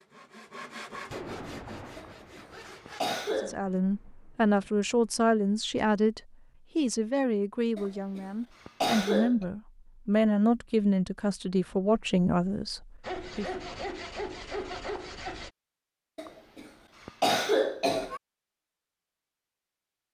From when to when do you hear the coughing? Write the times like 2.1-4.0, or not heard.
1.9-3.5, 7.8-9.4, 16.1-18.2.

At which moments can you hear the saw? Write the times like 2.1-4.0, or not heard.
0.0-3.0, 13.0-15.5.